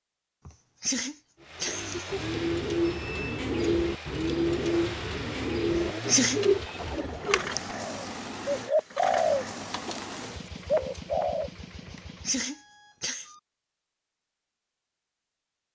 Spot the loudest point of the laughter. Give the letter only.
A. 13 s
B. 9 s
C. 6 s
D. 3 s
C.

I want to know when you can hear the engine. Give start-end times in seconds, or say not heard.
1.4-12.4.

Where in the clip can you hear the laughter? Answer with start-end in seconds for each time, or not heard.
0.5-2.2, 5.7-6.4, 11.8-13.3.